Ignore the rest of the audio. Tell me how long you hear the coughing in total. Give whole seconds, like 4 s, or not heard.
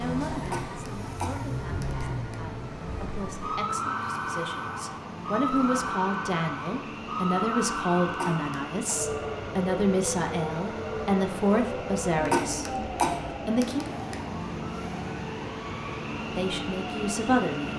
5 s.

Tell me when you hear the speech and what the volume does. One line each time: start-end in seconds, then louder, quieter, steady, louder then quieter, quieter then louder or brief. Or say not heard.
0.0-13.8 louder
16.4-17.7 brief.